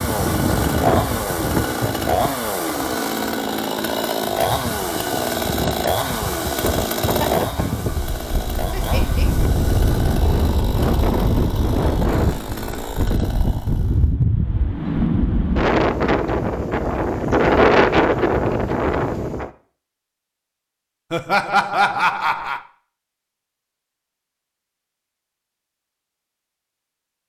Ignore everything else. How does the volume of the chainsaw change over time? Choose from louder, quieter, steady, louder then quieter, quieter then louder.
quieter.